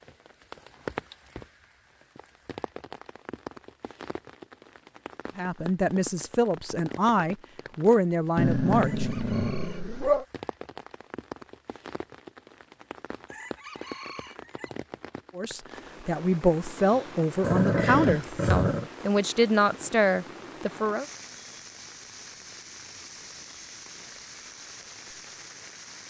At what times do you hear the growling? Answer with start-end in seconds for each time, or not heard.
8.3-10.2, 17.4-18.9.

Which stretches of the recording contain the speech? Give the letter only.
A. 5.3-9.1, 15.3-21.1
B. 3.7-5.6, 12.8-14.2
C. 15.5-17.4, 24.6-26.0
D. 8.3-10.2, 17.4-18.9
A.